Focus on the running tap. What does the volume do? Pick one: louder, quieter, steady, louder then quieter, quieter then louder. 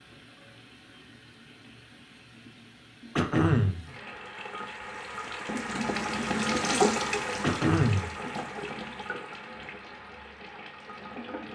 louder then quieter.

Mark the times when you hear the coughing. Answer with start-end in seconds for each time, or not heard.
3.1-3.8, 7.4-8.1.